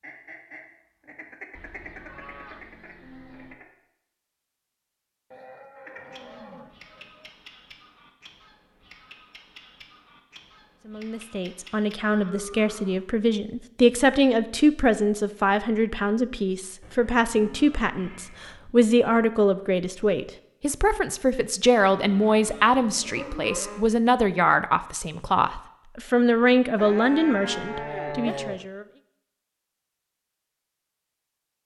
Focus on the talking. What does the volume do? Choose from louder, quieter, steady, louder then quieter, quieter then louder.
steady.